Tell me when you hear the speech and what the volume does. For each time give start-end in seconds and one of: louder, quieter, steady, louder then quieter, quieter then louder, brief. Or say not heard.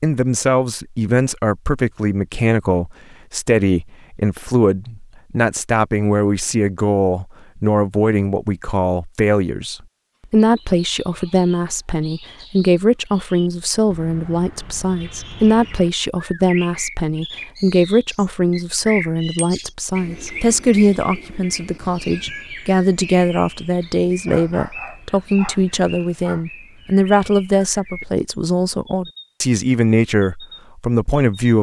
0.0-31.5 steady.